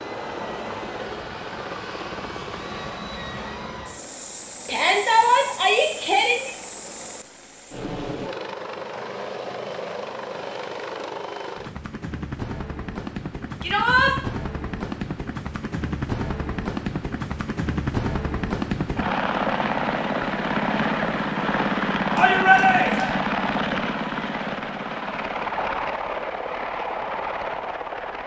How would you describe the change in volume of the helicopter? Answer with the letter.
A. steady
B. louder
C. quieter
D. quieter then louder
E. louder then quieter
B.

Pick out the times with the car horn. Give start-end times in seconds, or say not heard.
not heard.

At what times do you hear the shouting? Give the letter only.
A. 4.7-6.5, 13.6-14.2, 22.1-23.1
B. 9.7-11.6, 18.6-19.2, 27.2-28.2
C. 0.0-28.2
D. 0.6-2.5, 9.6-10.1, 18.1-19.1
A.